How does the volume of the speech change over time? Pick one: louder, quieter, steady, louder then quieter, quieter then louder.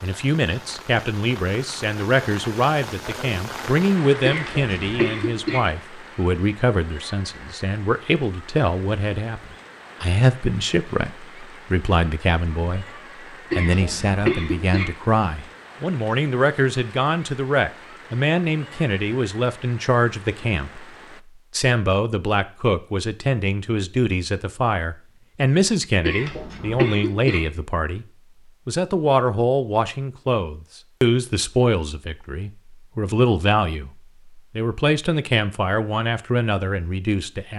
steady.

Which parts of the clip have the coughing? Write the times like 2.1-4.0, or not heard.
4.2-5.6, 13.5-14.8, 26.0-27.4.